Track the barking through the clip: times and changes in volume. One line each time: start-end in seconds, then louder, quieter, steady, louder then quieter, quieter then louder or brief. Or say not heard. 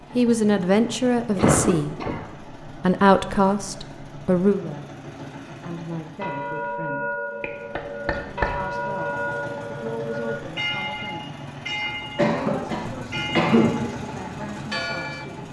not heard.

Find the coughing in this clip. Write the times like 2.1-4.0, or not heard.
1.4-2.2, 7.4-8.6, 11.8-13.8.